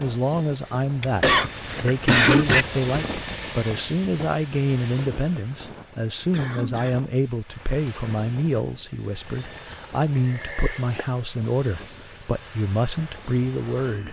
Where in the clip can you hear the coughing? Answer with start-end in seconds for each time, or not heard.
1.0-2.6, 6.3-7.2, 10.2-11.1.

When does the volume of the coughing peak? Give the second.
2 s.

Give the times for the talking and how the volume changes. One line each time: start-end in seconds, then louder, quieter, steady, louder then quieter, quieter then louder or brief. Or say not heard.
0.0-14.0 steady.